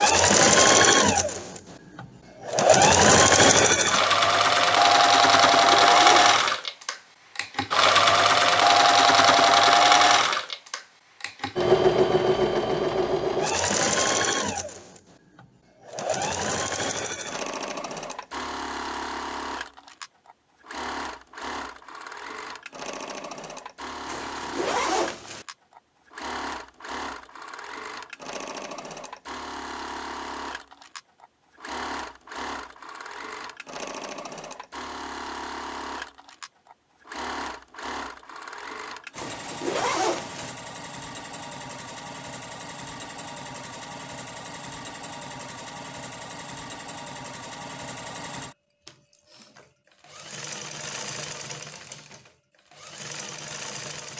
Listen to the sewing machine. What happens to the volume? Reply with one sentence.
The volume of the sewing machine goes down.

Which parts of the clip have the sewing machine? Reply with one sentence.
The sewing machine can be heard from 0.0 to 54.1 s.